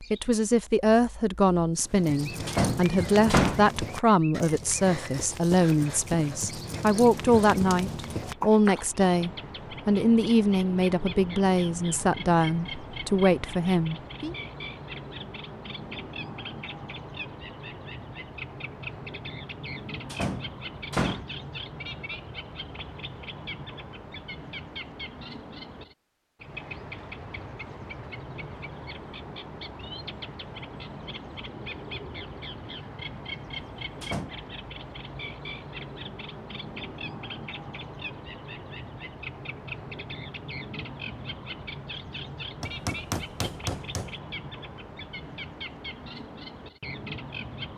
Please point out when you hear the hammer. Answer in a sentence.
You can hear the hammer from 42.6 to 44.2 s.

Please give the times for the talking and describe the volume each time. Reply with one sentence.
You can hear the talking from 0.0 to 14.3 s, at a steady volume.